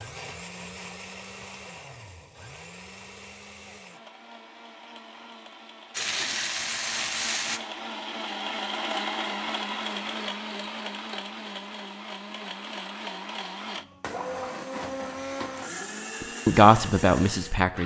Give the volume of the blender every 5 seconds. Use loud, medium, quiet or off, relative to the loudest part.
medium, loud, loud, loud.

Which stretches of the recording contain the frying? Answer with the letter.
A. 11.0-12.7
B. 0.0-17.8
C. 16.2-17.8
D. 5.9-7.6
D.